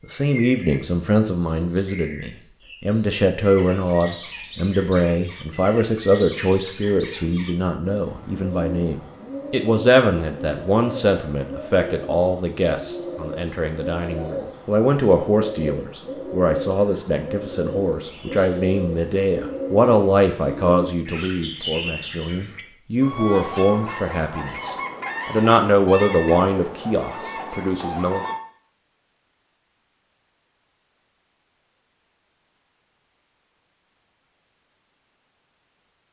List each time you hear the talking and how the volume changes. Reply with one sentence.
The talking can be heard from 0.1 to 28.2 s, at a steady volume.